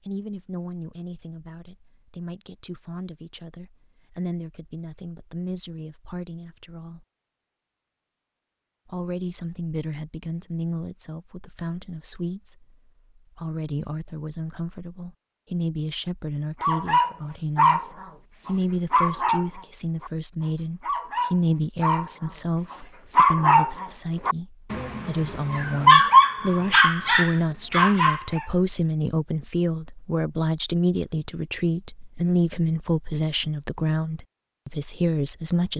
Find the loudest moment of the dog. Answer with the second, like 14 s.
26 s.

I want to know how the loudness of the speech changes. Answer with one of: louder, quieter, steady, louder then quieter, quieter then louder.
louder.